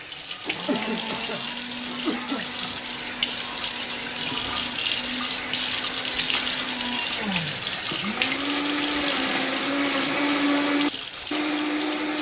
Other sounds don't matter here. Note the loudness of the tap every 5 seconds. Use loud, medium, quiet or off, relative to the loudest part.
loud, loud, medium.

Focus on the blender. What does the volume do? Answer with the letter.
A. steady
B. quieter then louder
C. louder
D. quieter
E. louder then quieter
C.